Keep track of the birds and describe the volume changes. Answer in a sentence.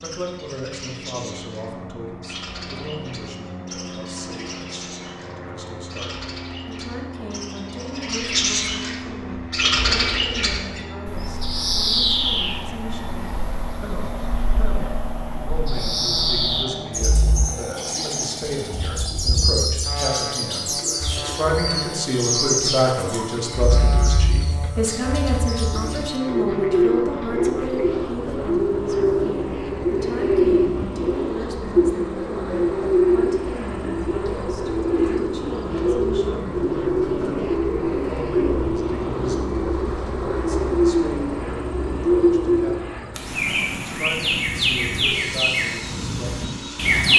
The loudness of the birds goes up.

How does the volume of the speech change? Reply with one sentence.
The volume of the speech goes up, then down.